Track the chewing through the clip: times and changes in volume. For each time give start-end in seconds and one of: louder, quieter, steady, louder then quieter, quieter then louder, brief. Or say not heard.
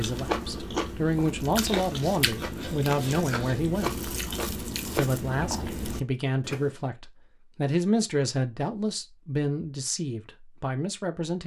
0.0-6.8 steady.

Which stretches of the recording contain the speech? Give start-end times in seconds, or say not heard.
0.0-4.0, 4.9-11.4.